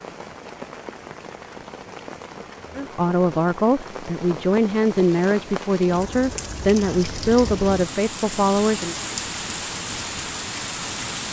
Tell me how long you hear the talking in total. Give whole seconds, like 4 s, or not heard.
6 s.